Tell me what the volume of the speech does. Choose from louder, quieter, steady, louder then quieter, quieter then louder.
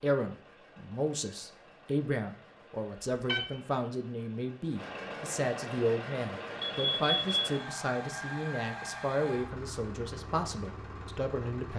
steady.